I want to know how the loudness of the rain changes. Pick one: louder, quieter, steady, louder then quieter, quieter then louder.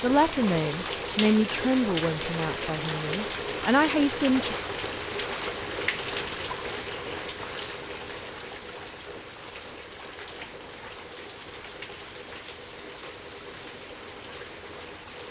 quieter.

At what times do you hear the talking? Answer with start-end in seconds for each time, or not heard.
0.0-4.5.